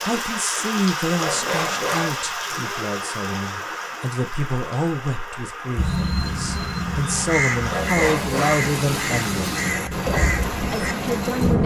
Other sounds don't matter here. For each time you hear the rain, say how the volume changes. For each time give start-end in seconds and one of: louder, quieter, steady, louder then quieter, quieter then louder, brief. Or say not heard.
0.0-11.6 quieter then louder.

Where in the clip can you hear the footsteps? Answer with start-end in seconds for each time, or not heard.
not heard.